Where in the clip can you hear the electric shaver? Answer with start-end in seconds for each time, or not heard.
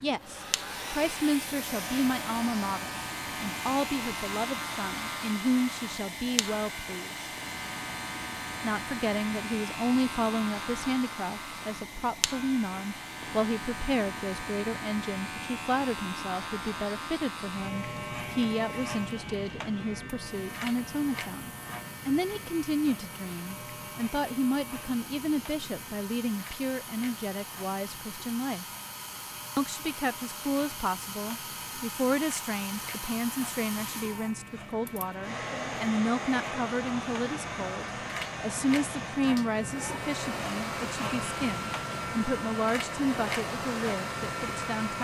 0.0-44.9.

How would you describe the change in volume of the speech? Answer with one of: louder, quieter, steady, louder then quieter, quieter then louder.
steady.